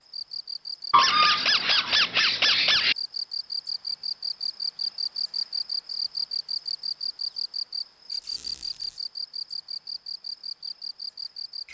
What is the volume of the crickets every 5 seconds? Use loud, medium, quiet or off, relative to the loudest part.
loud, loud, medium.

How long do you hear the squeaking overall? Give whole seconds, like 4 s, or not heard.
3 s.